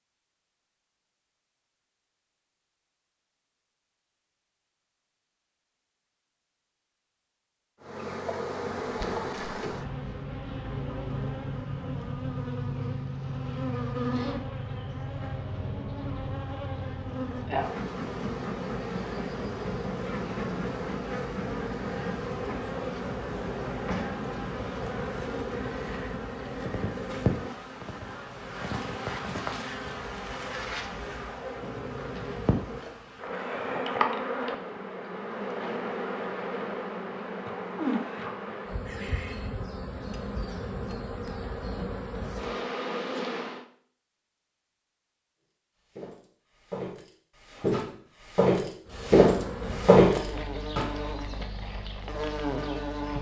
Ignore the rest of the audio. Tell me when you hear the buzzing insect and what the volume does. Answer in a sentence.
The buzzing insect can be heard from 7.8 to 43.6 s, at a steady volume; and from 48.9 to 53.1 s, getting quieter then louder.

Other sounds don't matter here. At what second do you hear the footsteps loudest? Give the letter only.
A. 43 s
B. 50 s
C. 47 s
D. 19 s
B.